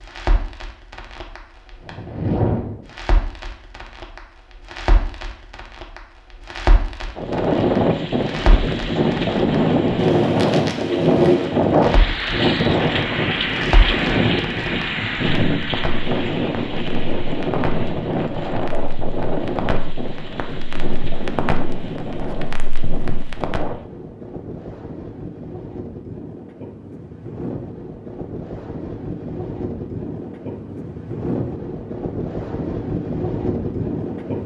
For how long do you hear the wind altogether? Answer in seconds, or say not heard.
27 s.